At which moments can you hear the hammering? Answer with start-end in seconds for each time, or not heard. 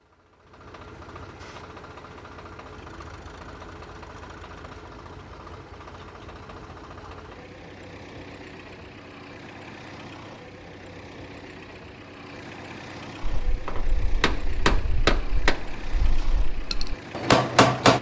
13.4-17.9.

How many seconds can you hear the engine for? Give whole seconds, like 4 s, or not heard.
18 s.